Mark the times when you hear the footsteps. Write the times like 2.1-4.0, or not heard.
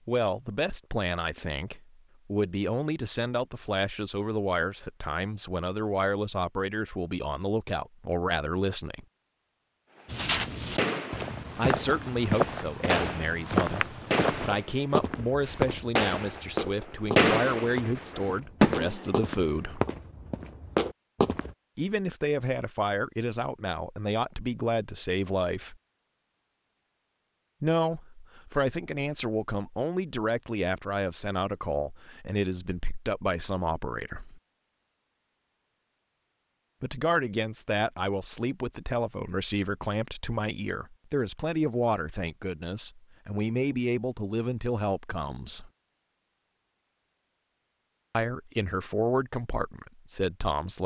10.1-21.6.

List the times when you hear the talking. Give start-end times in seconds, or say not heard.
0.1-9.1, 11.6-19.8, 21.8-25.8, 27.6-34.4, 36.8-45.7, 48.1-50.8.